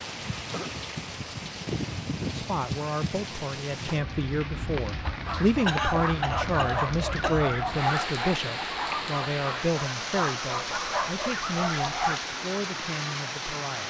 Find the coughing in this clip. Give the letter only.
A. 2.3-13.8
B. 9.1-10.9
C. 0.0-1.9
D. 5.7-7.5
D.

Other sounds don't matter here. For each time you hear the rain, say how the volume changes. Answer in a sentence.
The rain can be heard from 0.0 to 13.8 s, at a steady volume.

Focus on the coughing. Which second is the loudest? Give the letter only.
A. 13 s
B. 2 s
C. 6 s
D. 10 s
C.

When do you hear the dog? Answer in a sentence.
The dog can be heard from 5.0 to 12.2 s.